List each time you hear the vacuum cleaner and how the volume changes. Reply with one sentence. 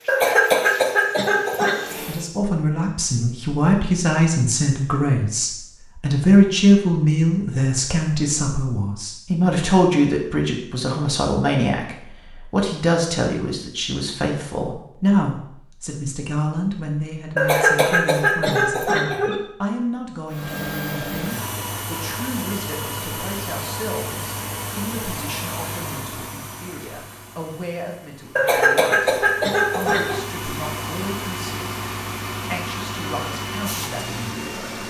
You can hear the vacuum cleaner briefly from 0.0 to 2.3 s; and from 20.2 to 34.8 s, getting quieter then louder.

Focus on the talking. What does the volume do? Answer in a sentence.
The loudness of the talking goes down.